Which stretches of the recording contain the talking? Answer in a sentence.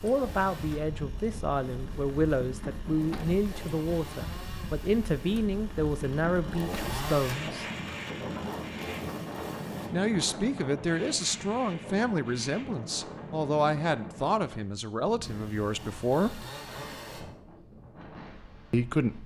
The talking can be heard from 0.0 to 7.7 s, from 9.9 to 16.4 s and from 18.7 to 19.2 s.